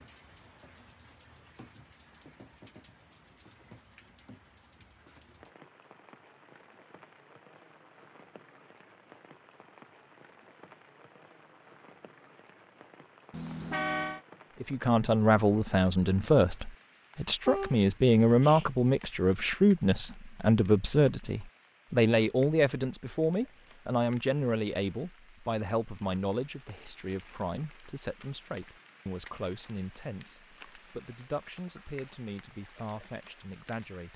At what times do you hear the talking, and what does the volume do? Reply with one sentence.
The talking can be heard from 14.6 to 34.1 s, getting quieter.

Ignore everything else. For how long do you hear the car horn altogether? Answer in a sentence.
The car horn can be heard for 2 seconds in total.